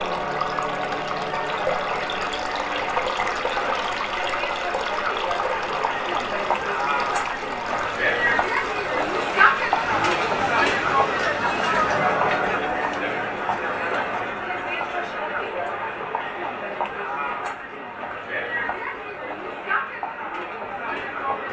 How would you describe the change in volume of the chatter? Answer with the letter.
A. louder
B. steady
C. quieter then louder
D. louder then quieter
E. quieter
D.